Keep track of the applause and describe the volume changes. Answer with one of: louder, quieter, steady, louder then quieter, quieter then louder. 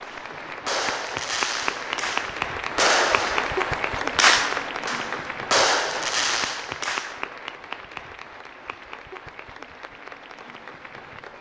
quieter.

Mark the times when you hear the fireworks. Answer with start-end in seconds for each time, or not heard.
0.0-7.2.